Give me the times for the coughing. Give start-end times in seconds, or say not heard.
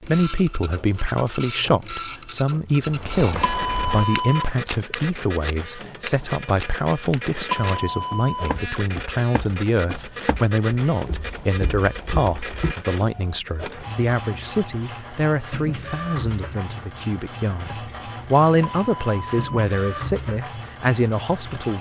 not heard.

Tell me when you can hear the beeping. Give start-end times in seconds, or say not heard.
3.3-4.5, 7.4-8.6, 18.5-19.8.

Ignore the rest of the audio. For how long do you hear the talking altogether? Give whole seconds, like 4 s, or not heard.
22 s.